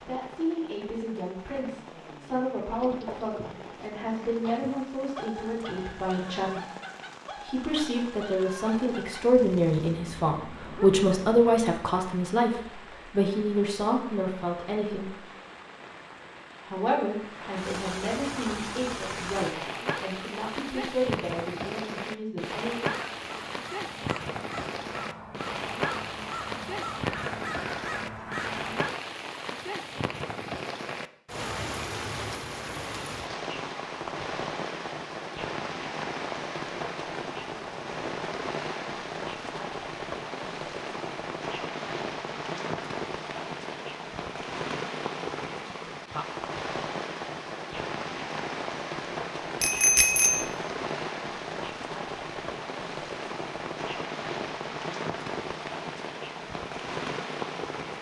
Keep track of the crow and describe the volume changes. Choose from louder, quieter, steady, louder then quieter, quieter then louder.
louder.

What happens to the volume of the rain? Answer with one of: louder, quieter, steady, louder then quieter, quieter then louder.
louder.